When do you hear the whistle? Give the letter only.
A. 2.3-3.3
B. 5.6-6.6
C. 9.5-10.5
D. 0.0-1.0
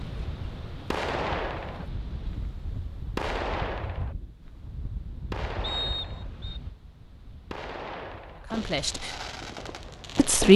B.